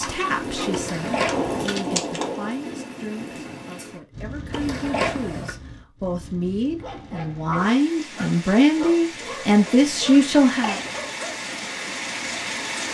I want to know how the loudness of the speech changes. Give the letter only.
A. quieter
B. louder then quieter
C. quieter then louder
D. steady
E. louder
E.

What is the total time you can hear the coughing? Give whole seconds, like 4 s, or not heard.
4 s.